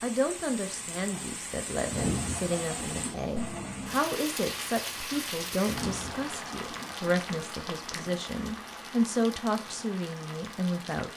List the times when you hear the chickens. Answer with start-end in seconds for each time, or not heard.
1.9-3.4, 5.7-7.1.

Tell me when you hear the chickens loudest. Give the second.
2 s.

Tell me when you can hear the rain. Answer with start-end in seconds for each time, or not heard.
0.0-11.1.